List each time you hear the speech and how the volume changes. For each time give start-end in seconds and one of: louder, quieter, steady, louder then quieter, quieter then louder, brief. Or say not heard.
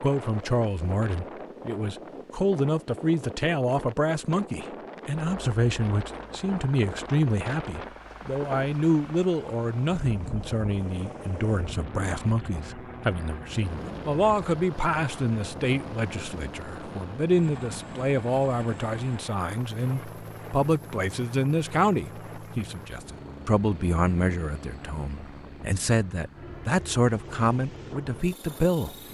0.0-28.9 steady.